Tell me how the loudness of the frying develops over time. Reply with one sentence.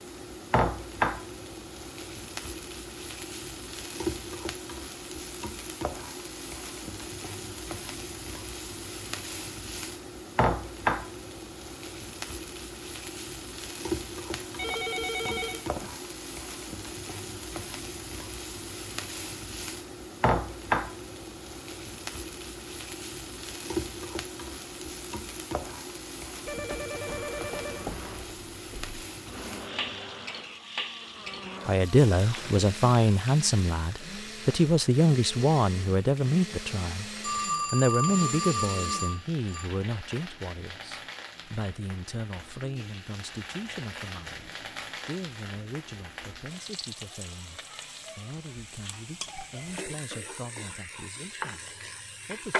The volume of the frying goes down.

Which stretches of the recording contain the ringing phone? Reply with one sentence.
The ringing phone can be heard from 14.3 to 15.9 s, from 26.4 to 28.9 s and from 37.2 to 39.6 s.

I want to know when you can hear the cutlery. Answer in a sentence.
You can't hear the cutlery here.